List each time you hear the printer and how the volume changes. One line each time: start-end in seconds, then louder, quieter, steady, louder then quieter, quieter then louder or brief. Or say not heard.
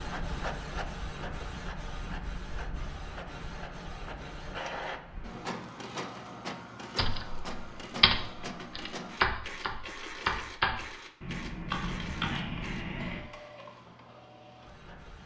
0.0-15.2 quieter.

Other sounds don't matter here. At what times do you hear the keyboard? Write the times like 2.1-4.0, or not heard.
7.0-13.2.